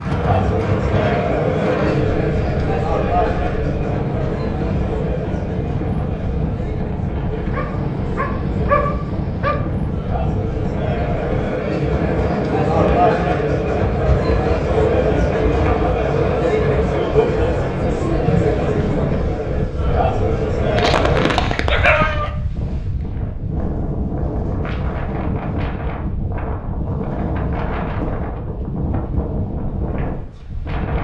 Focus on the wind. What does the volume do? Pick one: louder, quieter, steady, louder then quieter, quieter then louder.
steady.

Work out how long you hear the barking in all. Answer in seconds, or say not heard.
4 s.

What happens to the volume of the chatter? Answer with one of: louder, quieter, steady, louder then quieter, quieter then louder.
quieter then louder.